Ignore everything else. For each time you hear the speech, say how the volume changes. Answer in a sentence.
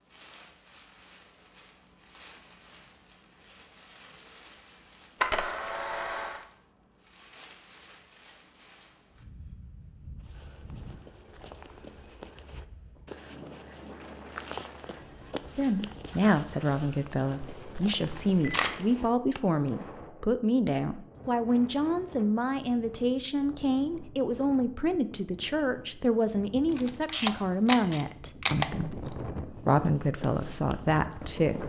The speech can be heard from 15.6 to 31.6 s, at a steady volume.